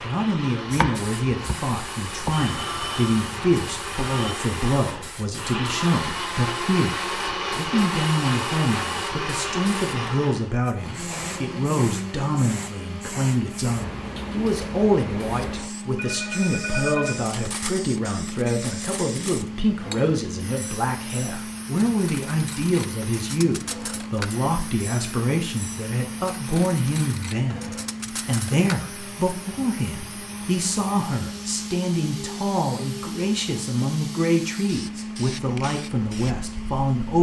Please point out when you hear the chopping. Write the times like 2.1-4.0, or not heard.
0.8-2.5.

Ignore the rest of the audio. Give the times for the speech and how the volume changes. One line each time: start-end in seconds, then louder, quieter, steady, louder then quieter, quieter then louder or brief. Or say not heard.
0.0-37.1 steady.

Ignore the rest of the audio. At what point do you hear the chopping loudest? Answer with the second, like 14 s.
1 s.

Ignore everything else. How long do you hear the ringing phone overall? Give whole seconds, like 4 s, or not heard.
4 s.